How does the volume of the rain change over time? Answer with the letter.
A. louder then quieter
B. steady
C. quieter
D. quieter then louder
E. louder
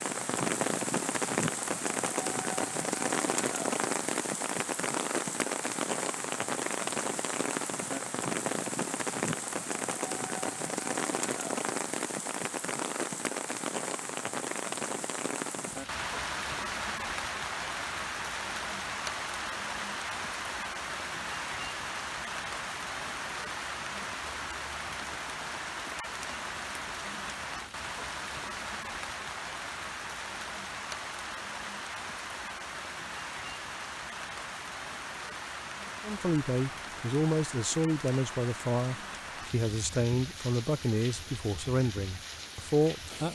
C.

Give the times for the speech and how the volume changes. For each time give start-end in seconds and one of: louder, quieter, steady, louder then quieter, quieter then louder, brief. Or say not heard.
36.0-43.3 steady.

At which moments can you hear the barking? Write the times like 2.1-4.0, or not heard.
not heard.